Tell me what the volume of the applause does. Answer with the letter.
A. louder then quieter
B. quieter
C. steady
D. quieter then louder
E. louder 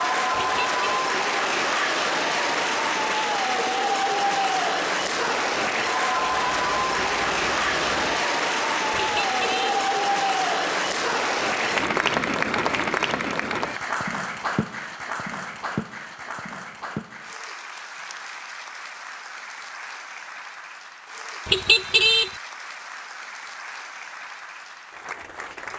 B.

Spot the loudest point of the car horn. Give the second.
22 s.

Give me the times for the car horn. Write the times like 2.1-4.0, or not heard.
0.3-1.0, 8.9-9.8, 21.4-22.3.